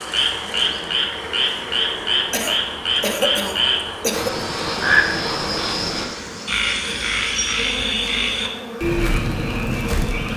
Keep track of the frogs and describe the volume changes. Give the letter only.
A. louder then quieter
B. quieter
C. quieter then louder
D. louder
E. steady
E.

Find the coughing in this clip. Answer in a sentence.
You can hear the coughing from 2.3 to 4.5 s.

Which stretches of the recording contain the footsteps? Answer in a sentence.
The footsteps can't be heard in this clip.